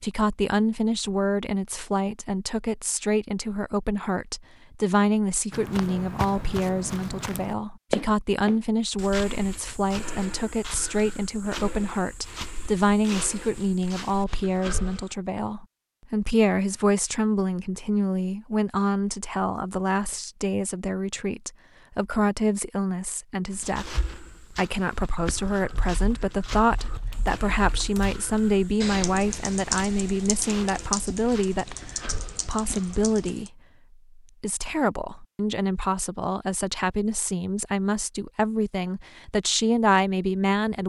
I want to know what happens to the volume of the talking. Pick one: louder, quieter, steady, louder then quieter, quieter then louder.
steady.